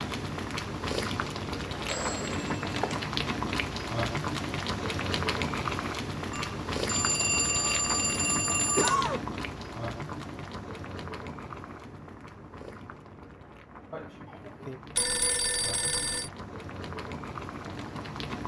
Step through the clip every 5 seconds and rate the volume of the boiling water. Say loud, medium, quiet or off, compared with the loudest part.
loud, loud, medium, medium.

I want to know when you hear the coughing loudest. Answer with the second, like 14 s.
9 s.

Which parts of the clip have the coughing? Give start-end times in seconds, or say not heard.
1.9-2.3, 8.8-9.2, 13.9-14.8.